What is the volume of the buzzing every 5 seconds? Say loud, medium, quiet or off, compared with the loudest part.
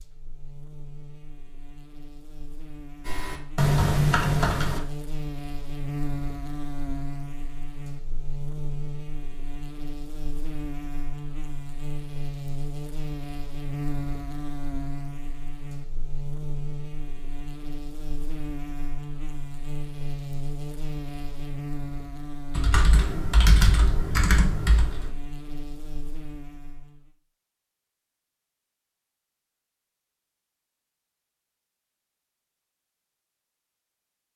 medium, loud, loud, loud, loud, medium, off.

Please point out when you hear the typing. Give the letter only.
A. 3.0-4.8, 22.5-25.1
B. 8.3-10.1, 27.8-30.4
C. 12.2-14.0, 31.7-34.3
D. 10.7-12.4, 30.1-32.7
A.